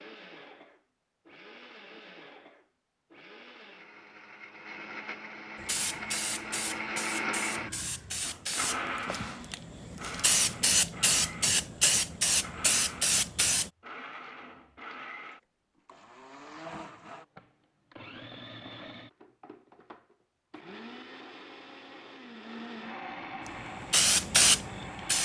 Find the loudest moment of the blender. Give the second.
7 s.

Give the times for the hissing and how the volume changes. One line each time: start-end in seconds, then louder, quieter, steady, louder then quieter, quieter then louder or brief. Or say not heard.
5.6-13.7 louder
23.4-25.2 brief.